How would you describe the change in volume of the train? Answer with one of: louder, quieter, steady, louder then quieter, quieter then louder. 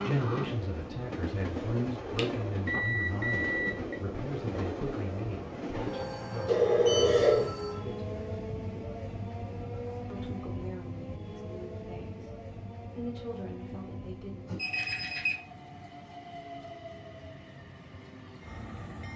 quieter.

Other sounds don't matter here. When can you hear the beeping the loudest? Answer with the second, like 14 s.
7 s.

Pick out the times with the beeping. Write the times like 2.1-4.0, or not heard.
2.1-4.0, 6.5-7.5, 14.4-15.3.